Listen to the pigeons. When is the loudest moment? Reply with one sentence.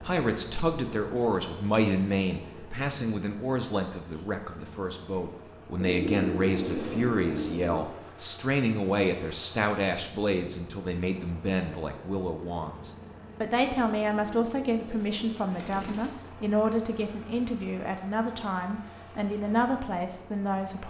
The volume of the pigeons peaks at 6 seconds.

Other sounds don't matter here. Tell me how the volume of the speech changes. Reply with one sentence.
The volume of the speech stays about the same.